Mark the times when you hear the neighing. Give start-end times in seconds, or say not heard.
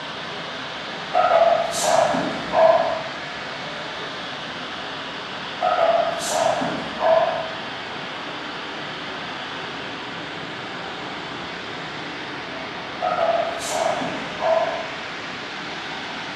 not heard.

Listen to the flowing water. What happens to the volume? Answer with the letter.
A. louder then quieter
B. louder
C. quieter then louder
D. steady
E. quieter
D.